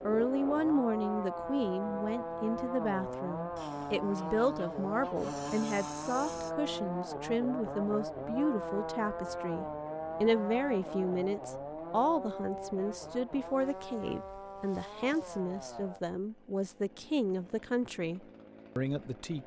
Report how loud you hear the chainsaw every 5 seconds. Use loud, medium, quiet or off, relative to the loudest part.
loud, loud, loud, quiet.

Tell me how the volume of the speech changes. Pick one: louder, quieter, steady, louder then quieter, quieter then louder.
steady.